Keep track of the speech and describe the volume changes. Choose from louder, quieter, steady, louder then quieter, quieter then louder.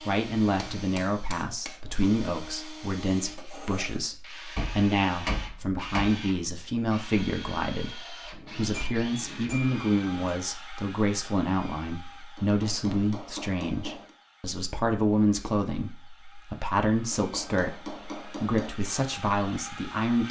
steady.